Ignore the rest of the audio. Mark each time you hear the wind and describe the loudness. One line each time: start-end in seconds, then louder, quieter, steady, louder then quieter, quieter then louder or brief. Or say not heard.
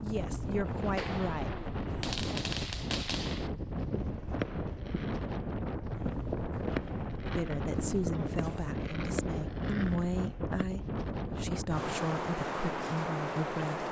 0.0-13.8 steady.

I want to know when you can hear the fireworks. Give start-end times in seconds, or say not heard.
0.7-10.7.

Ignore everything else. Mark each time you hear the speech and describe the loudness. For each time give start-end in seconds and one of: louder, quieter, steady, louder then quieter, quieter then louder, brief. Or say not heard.
0.0-1.6 brief
7.3-13.8 steady.